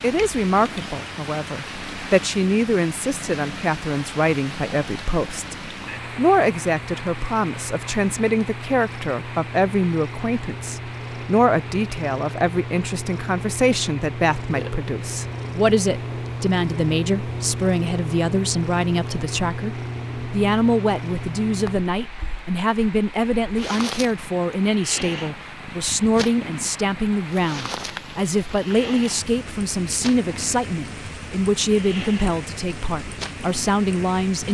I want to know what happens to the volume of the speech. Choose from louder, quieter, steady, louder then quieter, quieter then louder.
steady.